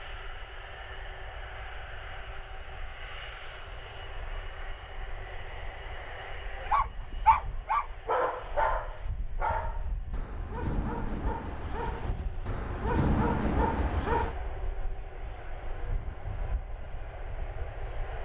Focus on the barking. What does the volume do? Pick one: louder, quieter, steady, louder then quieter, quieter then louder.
quieter then louder.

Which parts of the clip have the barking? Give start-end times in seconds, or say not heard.
6.5-14.3.